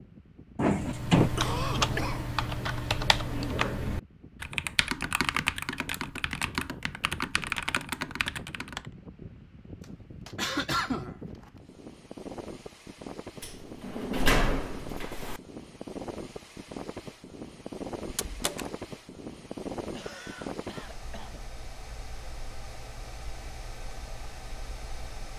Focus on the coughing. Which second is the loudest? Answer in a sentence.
The loudest moment of the coughing is at 11 seconds.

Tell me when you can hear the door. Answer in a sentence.
The door can be heard from 0.6 to 1.3 s, from 13.4 to 15.4 s and from 18.1 to 18.7 s.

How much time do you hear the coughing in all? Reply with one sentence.
The coughing can be heard for 4 seconds in total.